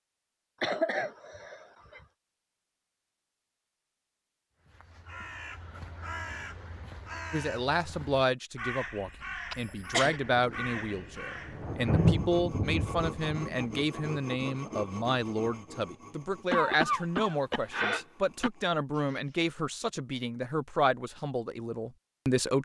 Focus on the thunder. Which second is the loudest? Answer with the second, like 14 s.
12 s.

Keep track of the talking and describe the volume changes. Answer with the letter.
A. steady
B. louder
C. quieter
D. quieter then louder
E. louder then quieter
A.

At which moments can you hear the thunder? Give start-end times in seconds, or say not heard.
10.2-13.8.